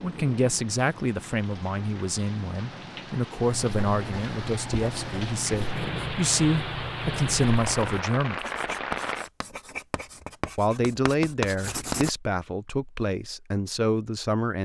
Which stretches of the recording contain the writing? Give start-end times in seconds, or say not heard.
3.6-12.1.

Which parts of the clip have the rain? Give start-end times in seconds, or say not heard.
0.0-9.3.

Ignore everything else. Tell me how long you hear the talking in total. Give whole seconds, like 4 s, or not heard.
12 s.